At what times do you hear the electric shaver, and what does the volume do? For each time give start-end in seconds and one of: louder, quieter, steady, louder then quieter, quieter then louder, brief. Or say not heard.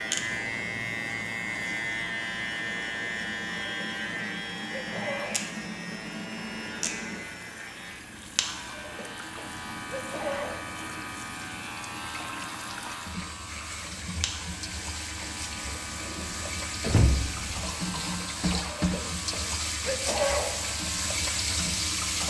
0.0-22.2 quieter.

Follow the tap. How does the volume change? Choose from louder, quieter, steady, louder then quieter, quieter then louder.
louder.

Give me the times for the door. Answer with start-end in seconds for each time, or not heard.
16.8-17.6.